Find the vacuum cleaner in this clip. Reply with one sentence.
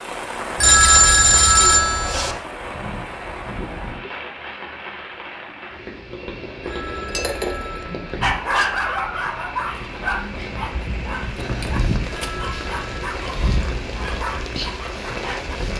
You can't hear the vacuum cleaner here.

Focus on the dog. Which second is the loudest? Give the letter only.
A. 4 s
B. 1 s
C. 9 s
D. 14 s
C.